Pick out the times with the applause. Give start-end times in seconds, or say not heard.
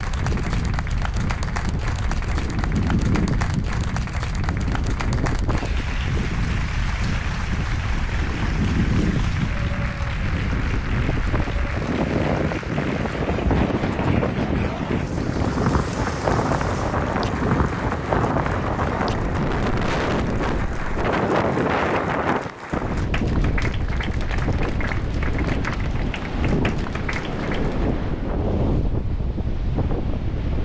0.0-27.9.